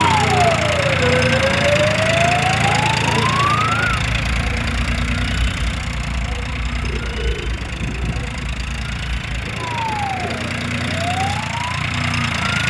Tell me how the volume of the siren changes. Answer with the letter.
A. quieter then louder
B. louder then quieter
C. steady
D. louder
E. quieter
A.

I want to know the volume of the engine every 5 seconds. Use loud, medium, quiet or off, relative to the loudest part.
loud, medium, loud.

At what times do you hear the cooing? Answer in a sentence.
The cooing can be heard from 6.8 to 8.4 s.